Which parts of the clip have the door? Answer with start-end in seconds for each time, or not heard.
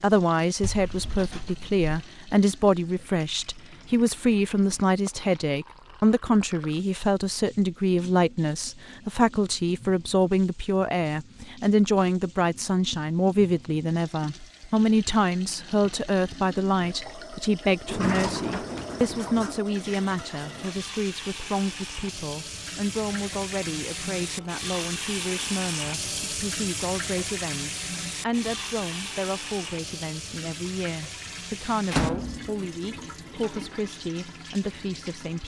0.6-2.0, 17.9-19.6, 31.9-32.5.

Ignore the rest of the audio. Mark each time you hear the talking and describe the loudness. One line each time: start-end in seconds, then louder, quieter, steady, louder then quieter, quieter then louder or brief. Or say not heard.
0.0-35.4 quieter.